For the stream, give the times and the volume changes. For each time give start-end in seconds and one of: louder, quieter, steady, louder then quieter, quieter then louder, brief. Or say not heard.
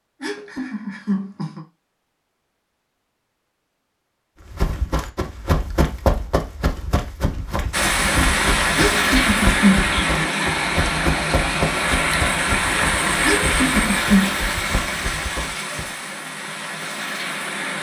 7.7-17.7 quieter.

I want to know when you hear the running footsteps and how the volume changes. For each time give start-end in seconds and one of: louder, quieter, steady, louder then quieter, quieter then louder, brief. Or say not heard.
4.5-15.9 quieter.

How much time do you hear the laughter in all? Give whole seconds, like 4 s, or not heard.
4 s.